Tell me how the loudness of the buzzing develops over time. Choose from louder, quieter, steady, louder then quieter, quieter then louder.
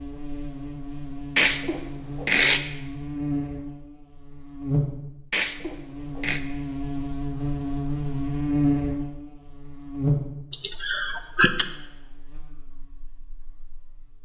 louder then quieter.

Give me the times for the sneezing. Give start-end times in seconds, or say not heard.
1.4-2.6, 5.3-6.4, 10.5-11.7.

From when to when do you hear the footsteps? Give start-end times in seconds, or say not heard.
not heard.